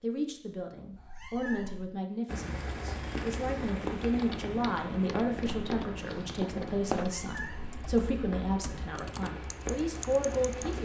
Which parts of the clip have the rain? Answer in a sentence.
The rain can be heard from 2.2 to 10.8 s.